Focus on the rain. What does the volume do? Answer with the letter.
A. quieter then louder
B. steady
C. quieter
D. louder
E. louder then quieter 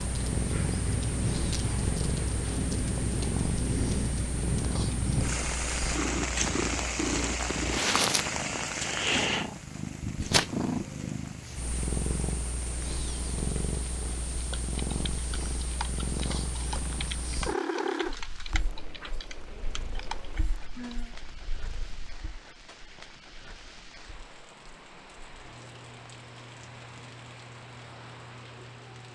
C.